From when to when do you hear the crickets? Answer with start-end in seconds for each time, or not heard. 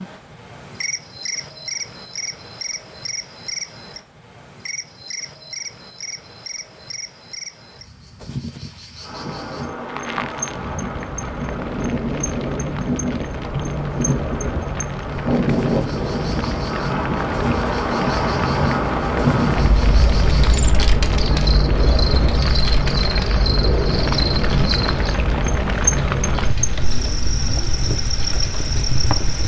0.0-29.4.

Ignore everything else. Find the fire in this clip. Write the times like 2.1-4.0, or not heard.
9.8-29.4.